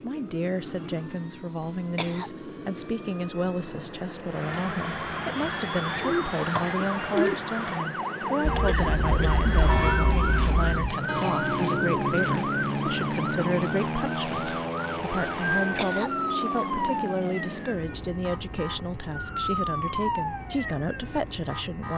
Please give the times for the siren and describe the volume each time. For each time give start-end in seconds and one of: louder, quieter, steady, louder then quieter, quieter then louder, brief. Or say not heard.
4.2-21.9 steady.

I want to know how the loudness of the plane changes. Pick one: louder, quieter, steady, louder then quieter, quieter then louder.
louder then quieter.